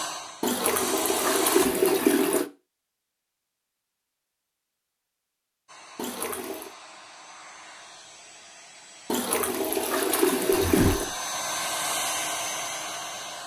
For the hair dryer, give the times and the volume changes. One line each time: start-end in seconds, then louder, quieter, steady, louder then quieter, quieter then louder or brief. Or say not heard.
0.0-1.7 brief
5.7-13.4 louder.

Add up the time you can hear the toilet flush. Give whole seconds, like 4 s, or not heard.
5 s.